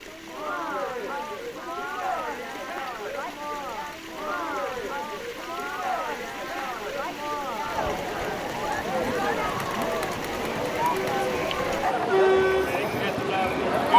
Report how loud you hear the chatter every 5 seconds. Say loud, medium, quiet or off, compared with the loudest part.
medium, medium, loud.